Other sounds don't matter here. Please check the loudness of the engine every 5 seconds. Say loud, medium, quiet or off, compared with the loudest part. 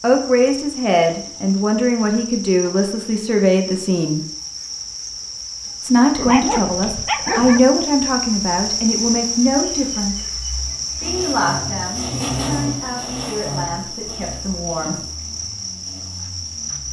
off, off, loud, quiet.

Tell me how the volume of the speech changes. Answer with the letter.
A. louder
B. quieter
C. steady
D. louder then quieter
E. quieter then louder
B.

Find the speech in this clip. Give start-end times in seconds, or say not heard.
0.0-4.2, 5.8-10.2, 11.0-15.0.